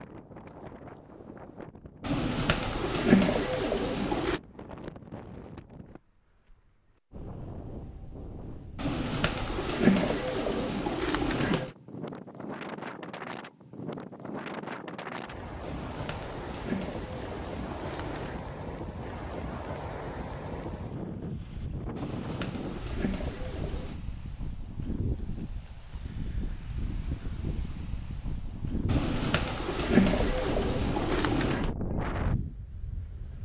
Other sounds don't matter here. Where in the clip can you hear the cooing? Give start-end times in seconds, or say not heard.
2.0-4.4, 8.8-11.8, 15.6-18.4, 21.9-24.0, 28.9-31.7.